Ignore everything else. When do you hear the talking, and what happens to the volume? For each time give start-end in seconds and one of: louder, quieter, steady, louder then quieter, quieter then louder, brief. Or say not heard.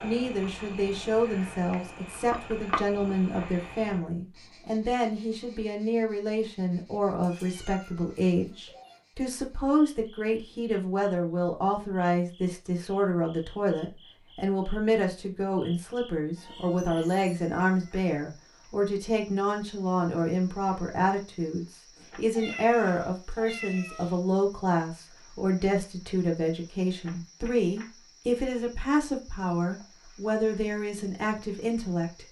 0.0-32.2 steady.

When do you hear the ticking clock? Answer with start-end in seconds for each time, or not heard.
not heard.